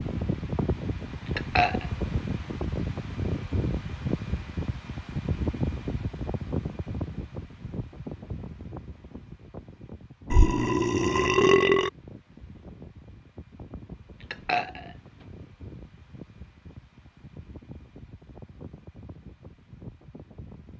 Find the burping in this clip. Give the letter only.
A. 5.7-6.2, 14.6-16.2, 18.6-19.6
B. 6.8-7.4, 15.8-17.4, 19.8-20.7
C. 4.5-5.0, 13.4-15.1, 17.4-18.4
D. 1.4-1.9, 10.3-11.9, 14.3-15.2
D.